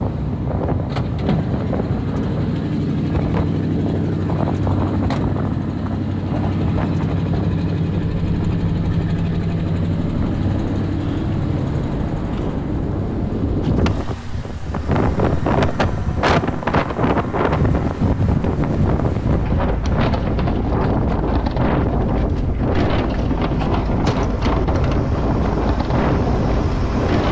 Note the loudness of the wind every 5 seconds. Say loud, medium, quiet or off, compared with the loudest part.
medium, medium, medium, loud, loud, loud.